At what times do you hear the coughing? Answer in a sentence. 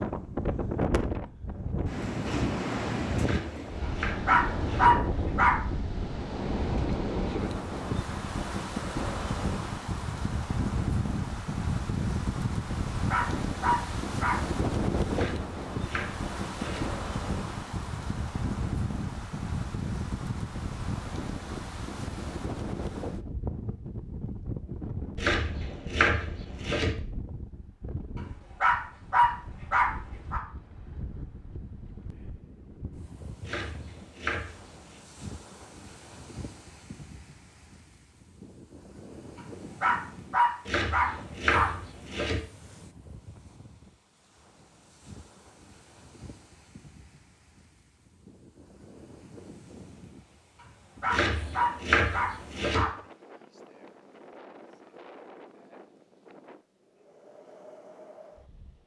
The coughing can't be heard in this clip.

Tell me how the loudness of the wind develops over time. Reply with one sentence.
The loudness of the wind goes down.